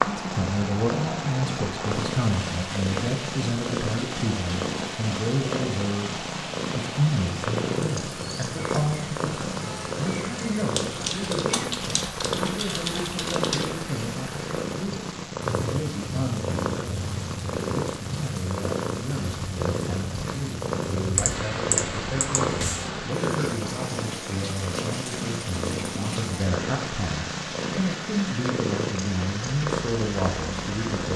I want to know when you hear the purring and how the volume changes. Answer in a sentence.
The purring can be heard from 0.0 to 31.1 s, at a steady volume.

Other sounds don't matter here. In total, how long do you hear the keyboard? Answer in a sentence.
You can hear the keyboard for 5 seconds altogether.